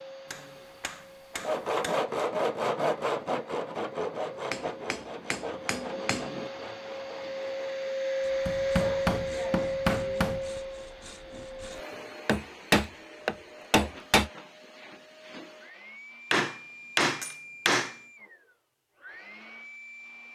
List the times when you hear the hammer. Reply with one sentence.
The hammer can be heard from 0.3 to 2.0 s, from 4.5 to 6.5 s, from 8.4 to 10.4 s, from 12.2 to 14.3 s and from 16.3 to 17.9 s.